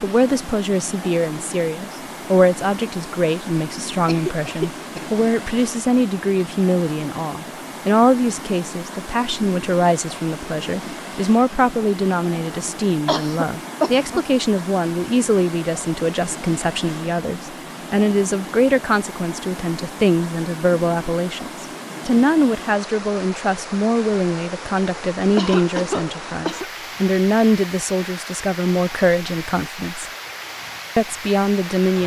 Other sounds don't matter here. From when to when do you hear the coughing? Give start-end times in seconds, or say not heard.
4.0-5.1, 13.1-14.2, 25.4-26.7.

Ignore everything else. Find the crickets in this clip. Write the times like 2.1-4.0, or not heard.
not heard.